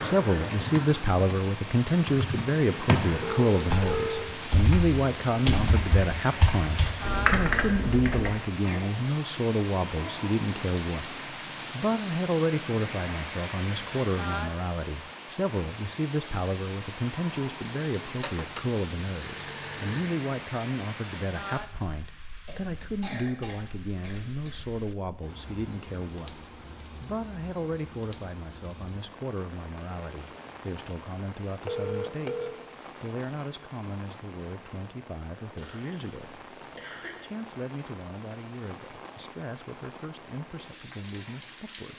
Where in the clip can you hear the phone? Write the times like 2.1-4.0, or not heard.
3.2-4.3, 18.2-20.2, 31.6-32.6.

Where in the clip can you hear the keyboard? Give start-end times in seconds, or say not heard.
0.0-8.3.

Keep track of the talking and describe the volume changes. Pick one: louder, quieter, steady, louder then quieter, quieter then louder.
quieter.